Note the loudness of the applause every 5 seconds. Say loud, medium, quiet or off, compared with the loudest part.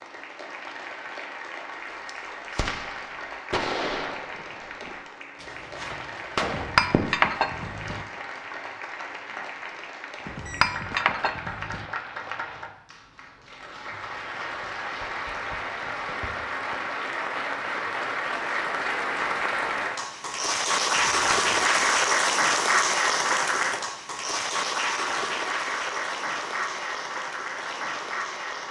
quiet, quiet, quiet, medium, loud, medium.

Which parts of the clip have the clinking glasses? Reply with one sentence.
You can hear the clinking glasses from 6.4 to 8.1 s, from 10.2 to 11.8 s and from 20.9 to 21.9 s.